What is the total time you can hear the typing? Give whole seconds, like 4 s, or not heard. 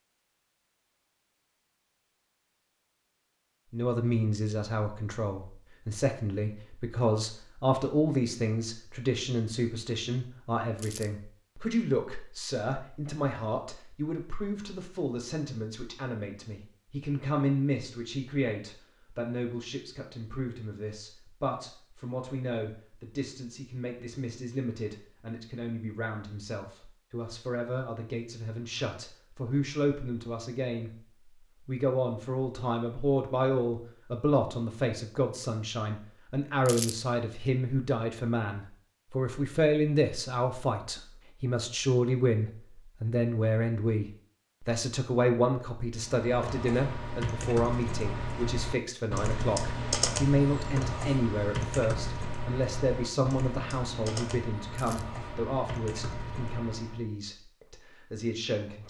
11 s.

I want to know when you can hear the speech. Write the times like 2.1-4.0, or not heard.
3.7-30.9, 31.6-58.8.